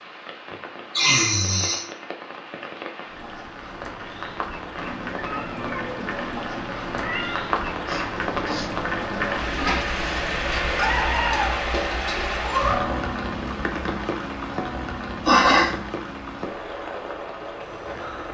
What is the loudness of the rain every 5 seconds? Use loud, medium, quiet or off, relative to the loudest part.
medium, loud, loud, medium.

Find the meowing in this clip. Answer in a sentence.
You can hear the meowing from 4.8 to 7.5 s and from 10.8 to 13.2 s.